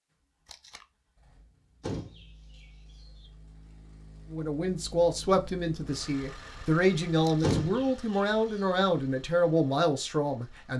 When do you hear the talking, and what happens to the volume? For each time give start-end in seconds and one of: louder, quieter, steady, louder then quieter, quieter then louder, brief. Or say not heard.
4.3-10.7 steady.